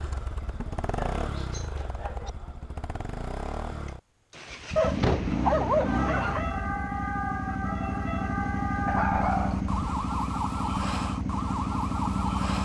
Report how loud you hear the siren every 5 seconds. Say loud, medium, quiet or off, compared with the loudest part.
off, loud, loud.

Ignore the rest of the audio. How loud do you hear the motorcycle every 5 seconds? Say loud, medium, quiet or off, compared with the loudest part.
medium, loud, loud.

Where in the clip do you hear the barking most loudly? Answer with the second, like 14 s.
6 s.